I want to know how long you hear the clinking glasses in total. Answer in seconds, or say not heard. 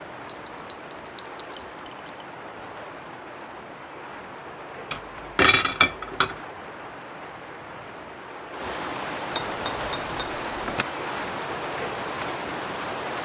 5 s.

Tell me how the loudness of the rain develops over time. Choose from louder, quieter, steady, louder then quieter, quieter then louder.
louder.